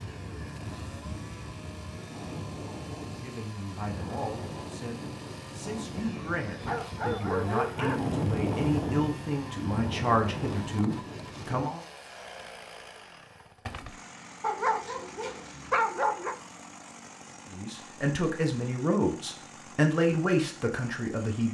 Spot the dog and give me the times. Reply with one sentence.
The dog can be heard from 6.6 to 8.1 s and from 14.4 to 16.4 s.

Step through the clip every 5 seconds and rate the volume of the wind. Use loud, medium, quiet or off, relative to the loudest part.
medium, loud, loud, off, off.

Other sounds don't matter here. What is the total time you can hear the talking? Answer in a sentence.
The talking can be heard for 13 seconds in total.